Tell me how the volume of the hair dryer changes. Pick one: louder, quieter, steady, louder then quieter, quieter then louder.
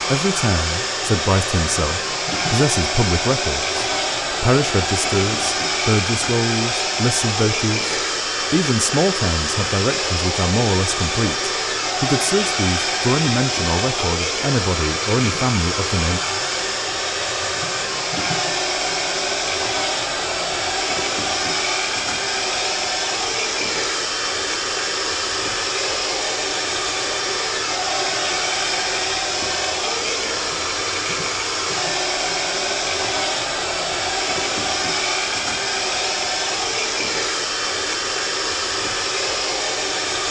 steady.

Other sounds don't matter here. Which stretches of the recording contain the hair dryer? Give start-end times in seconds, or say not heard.
0.0-40.2.